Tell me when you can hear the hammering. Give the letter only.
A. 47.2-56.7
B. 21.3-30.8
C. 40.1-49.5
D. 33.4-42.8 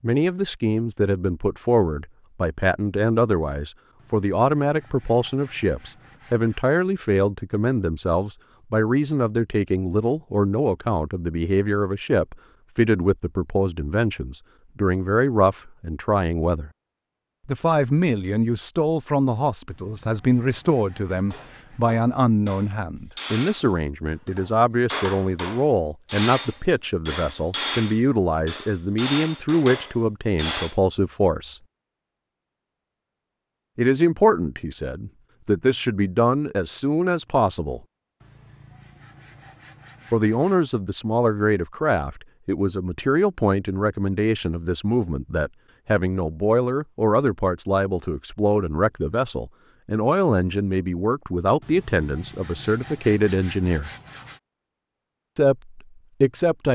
B.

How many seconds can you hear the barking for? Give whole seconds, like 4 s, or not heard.
not heard.